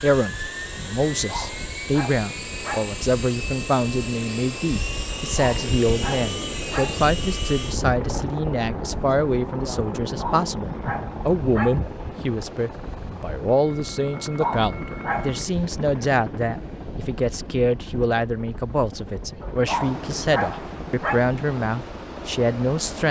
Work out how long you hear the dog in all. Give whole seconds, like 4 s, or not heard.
8 s.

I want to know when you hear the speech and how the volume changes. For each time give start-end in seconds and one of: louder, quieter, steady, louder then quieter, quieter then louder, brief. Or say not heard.
0.0-23.0 steady.